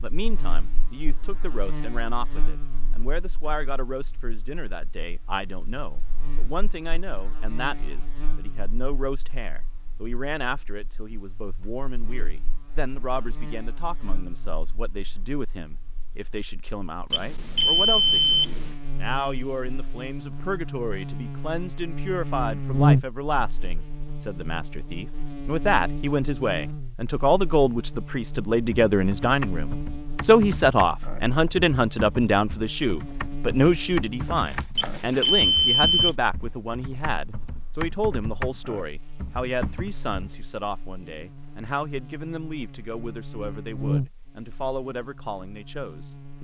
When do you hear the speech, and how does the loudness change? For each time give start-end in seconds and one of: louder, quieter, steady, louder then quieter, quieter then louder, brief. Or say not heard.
0.0-46.3 louder then quieter.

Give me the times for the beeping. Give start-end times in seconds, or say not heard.
17.1-18.7, 34.8-36.1.